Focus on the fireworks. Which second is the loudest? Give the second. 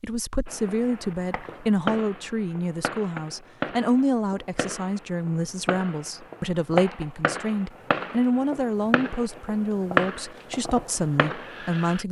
10 s.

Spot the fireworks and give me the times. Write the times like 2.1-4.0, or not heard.
0.5-12.0.